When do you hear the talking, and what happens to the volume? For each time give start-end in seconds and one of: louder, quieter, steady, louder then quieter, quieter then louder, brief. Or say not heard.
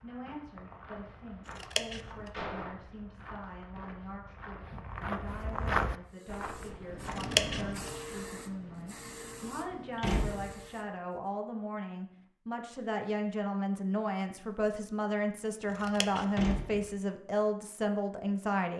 0.0-18.7 louder.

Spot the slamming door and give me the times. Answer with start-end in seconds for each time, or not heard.
2.3-2.8, 10.0-10.6, 16.4-16.9.